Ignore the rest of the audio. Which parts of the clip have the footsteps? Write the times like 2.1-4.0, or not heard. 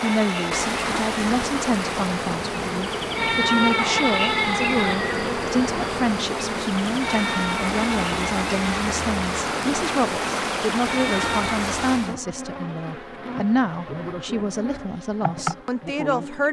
not heard.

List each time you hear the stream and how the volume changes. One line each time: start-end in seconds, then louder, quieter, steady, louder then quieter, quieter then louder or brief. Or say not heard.
0.0-12.2 quieter then louder.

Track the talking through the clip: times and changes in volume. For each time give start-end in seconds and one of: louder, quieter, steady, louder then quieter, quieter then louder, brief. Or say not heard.
0.0-16.4 steady.